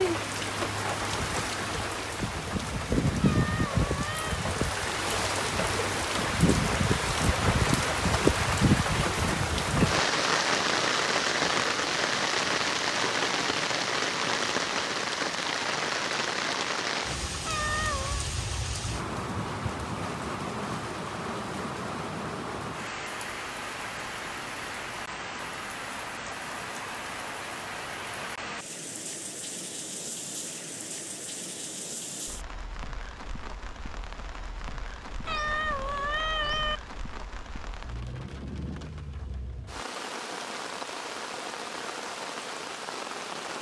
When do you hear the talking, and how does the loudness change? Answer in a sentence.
You can't hear the talking here.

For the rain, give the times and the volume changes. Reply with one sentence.
You can hear the rain from 0.0 to 43.5 s, getting quieter.